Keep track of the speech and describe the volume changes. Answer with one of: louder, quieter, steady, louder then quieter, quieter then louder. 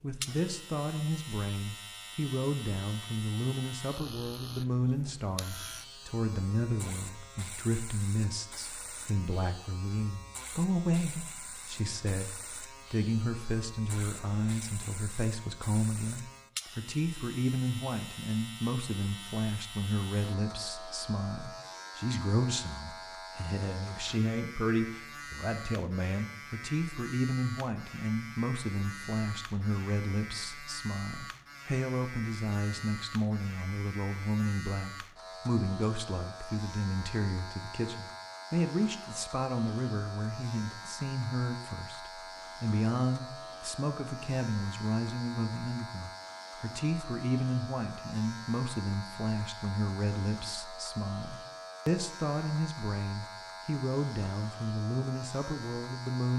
steady.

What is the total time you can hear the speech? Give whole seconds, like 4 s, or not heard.
56 s.